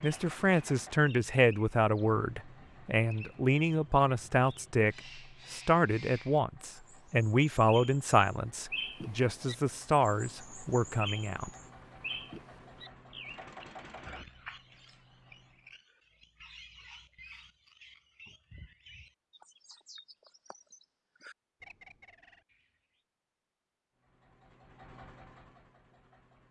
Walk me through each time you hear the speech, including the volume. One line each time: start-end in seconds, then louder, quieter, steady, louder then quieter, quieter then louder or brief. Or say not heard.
0.0-11.5 steady.